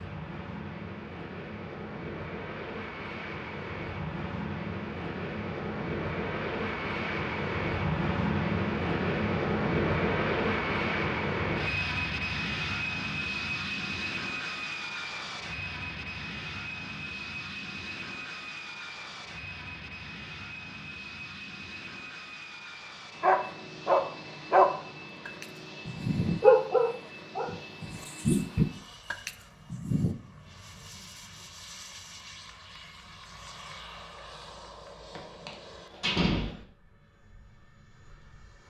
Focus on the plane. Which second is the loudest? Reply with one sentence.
The loudest moment of the plane is at 10 seconds.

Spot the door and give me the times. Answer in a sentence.
You can hear the door from 35.1 to 36.5 s.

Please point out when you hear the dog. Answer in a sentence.
The dog can be heard from 23.2 to 30.1 s.